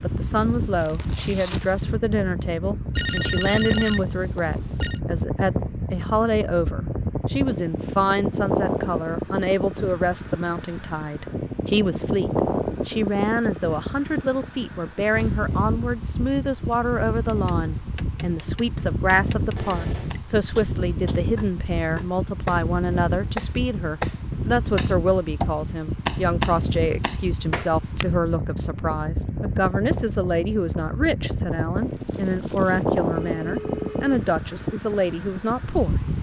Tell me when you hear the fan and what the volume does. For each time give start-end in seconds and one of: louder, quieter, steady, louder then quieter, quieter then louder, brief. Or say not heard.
0.0-36.1 steady.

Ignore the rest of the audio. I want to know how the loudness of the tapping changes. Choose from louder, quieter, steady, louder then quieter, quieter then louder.
louder.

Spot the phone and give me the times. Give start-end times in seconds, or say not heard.
2.9-5.0, 19.6-20.2, 33.1-34.1.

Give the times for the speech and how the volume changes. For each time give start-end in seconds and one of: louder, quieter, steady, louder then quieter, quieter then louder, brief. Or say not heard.
0.0-36.0 steady.